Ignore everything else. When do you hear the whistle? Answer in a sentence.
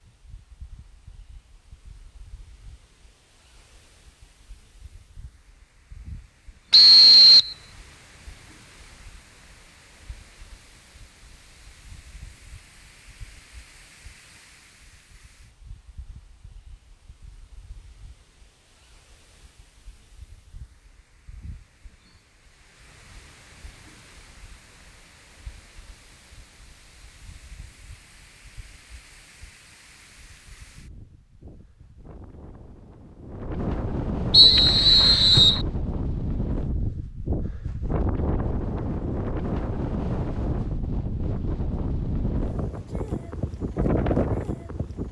The whistle can be heard from 6.7 to 7.5 s and from 34.3 to 35.6 s.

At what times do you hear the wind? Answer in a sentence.
The wind can be heard from 0.0 to 45.0 s.